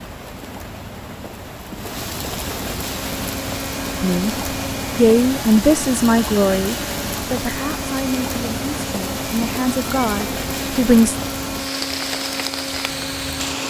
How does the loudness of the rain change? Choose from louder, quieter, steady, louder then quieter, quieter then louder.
steady.